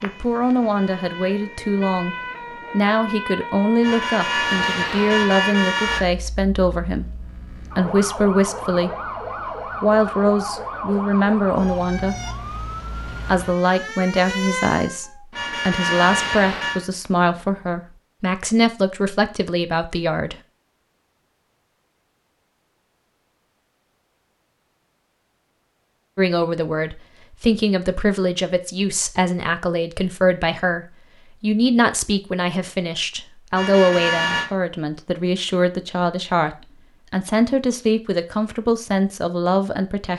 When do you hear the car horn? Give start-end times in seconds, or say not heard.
3.8-6.0, 15.3-16.9, 33.5-34.5.